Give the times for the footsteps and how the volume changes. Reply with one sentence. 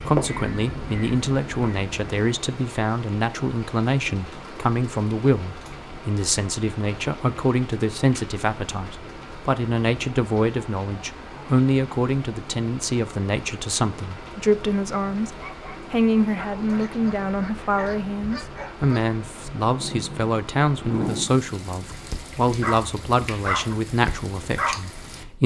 The footsteps can't be heard in this clip.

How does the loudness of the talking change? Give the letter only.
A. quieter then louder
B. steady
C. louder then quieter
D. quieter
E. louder
B.